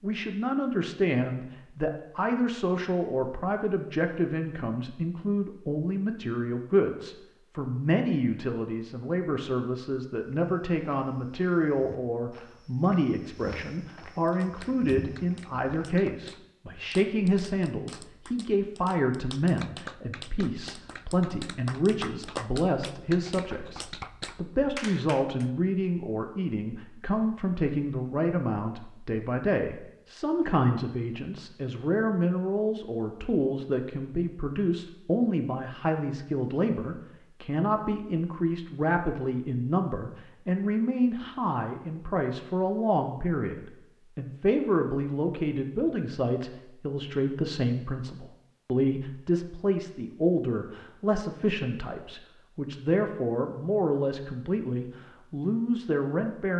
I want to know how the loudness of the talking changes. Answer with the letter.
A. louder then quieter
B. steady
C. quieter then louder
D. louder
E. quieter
B.